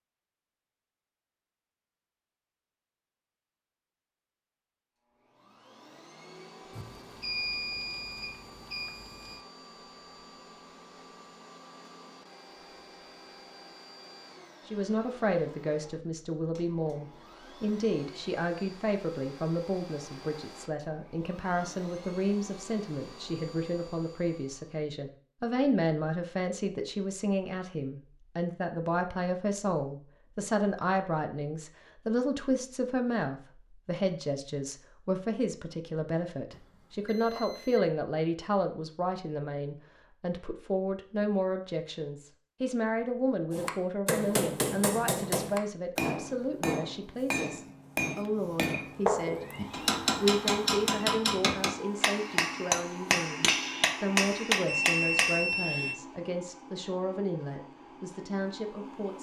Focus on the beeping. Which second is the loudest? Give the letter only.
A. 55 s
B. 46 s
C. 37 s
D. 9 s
A.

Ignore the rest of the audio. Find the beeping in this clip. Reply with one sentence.
The beeping can be heard from 6.7 to 9.4 s, from 36.5 to 37.9 s and from 54.6 to 56.0 s.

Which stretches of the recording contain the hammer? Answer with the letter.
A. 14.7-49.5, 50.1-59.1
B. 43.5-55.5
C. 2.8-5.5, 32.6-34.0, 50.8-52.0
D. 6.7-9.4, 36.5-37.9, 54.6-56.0
B.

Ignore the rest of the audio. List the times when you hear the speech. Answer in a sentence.
You can hear the speech from 14.7 to 49.5 s and from 50.1 to 59.1 s.